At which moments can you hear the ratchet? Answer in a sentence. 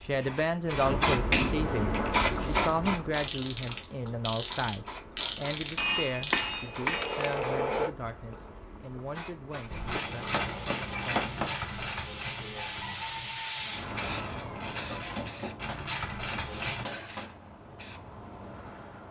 The ratchet can be heard from 2.2 to 6.4 s and from 9.7 to 16.9 s.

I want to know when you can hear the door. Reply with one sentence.
You can't hear the door here.